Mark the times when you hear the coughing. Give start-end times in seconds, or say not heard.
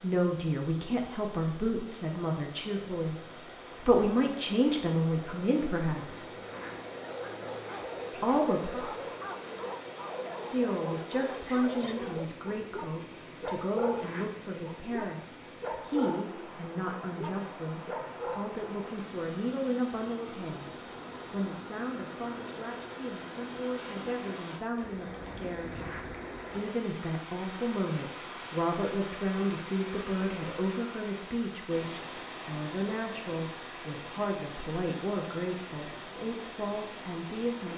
not heard.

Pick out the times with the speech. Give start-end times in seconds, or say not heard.
0.0-6.3, 8.2-8.8, 10.3-25.9, 26.6-37.7.